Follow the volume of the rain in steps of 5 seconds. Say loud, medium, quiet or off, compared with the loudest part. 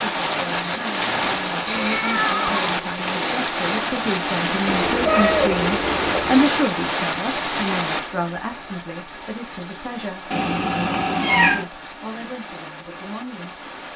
loud, loud, quiet.